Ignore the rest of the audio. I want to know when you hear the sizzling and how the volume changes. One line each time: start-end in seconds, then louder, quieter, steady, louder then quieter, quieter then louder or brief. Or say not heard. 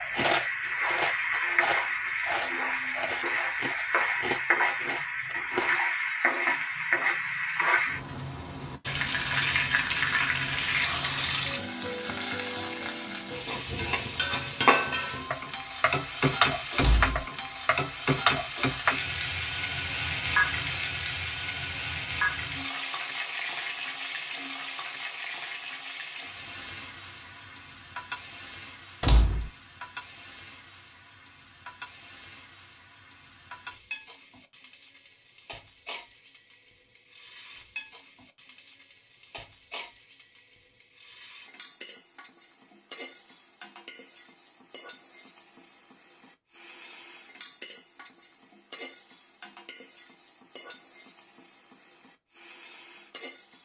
0.0-53.5 quieter.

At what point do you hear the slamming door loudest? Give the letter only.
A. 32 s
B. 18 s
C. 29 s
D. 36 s
C.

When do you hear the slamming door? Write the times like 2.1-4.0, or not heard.
16.8-17.2, 29.0-29.5.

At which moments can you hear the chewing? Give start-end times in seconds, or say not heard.
0.0-5.8.